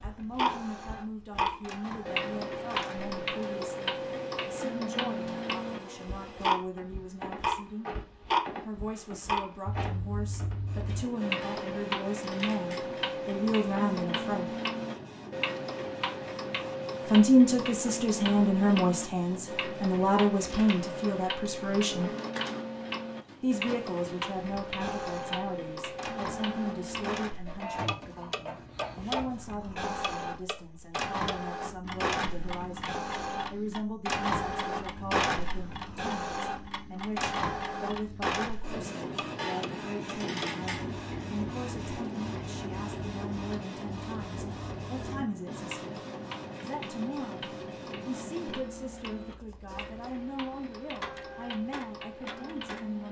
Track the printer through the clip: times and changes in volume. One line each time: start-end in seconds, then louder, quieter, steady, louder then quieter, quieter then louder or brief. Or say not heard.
0.0-53.0 louder then quieter.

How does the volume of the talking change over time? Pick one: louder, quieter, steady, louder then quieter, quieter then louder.
louder then quieter.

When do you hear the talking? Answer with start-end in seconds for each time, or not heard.
0.0-7.9, 8.7-14.4, 17.1-22.1, 23.4-46.0, 46.6-53.0.